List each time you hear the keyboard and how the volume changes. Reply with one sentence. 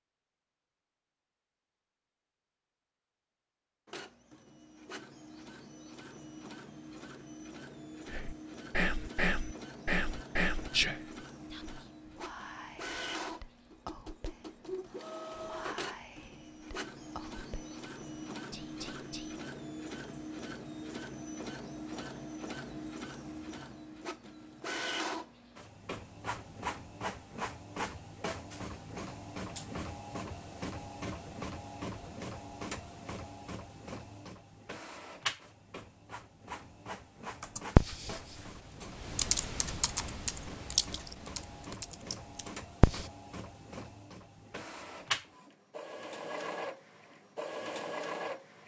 You can hear the keyboard from 37.4 to 43.0 s, getting louder then quieter.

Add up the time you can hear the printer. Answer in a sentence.
The printer can be heard for 45 seconds in total.